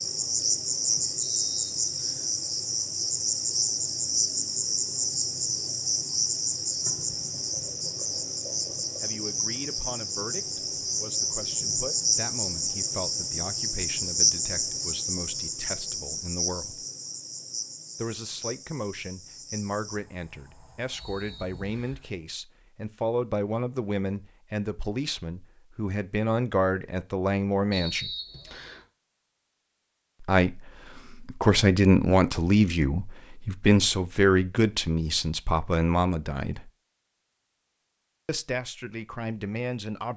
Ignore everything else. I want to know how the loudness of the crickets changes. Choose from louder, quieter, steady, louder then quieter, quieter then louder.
quieter.